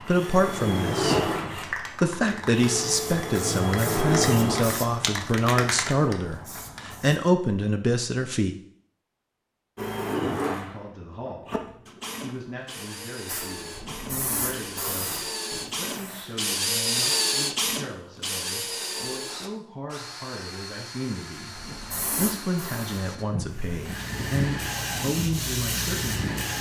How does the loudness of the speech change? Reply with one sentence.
The loudness of the speech goes down, then up.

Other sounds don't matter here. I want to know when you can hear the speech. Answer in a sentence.
The speech can be heard from 0.0 to 8.6 s and from 10.3 to 26.5 s.